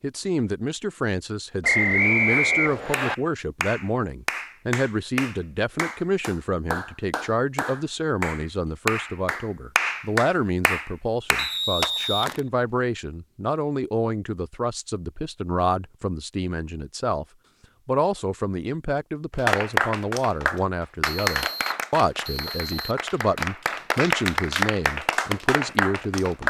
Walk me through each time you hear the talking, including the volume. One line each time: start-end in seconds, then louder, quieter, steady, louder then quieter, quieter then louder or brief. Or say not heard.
0.0-17.2 steady
17.9-26.4 steady.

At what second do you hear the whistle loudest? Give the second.
2 s.